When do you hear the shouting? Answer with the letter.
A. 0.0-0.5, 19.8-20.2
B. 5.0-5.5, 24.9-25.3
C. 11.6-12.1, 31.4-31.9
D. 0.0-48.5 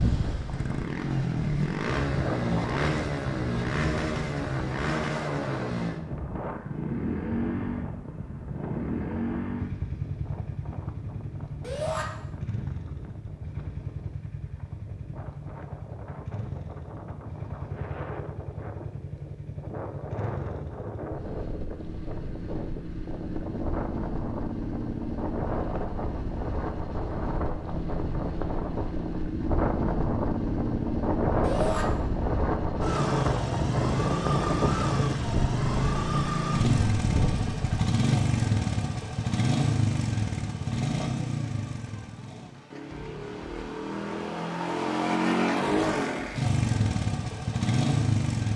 C.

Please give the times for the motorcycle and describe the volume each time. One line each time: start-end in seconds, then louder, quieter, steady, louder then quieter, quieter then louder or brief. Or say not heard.
0.0-48.5 quieter then louder.